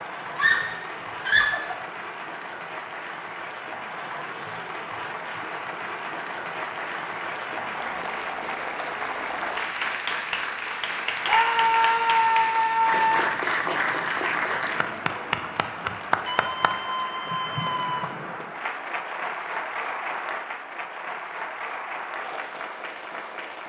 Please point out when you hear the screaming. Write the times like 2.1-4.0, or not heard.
0.3-1.8, 11.2-13.2, 16.2-18.1.